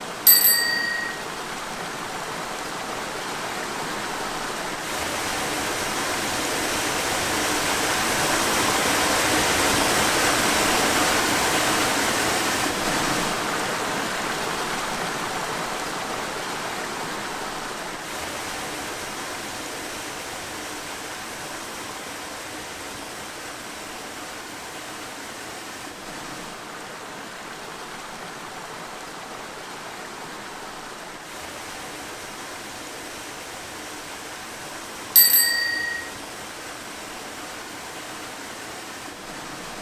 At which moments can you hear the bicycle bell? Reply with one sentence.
You can hear the bicycle bell from 0.2 to 1.1 s and from 35.1 to 36.0 s.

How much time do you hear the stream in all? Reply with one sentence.
You can hear the stream for 40 seconds altogether.